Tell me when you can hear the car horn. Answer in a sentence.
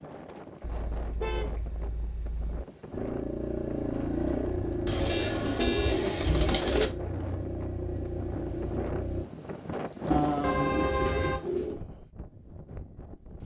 The car horn can be heard from 0.6 to 2.6 s, from 5.0 to 6.1 s and from 10.4 to 11.4 s.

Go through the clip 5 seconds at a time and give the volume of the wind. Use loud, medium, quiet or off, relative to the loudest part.
medium, loud, loud.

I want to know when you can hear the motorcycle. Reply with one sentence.
The motorcycle can be heard from 2.9 to 9.2 s.